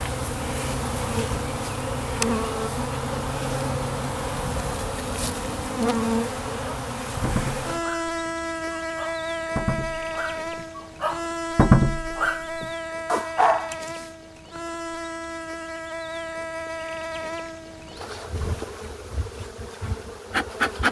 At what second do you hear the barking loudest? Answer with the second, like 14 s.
12 s.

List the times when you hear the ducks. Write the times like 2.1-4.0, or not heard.
not heard.